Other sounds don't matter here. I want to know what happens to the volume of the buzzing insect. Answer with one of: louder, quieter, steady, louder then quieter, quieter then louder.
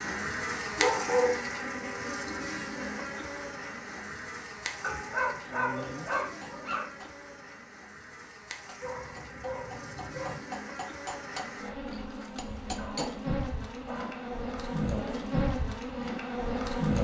quieter then louder.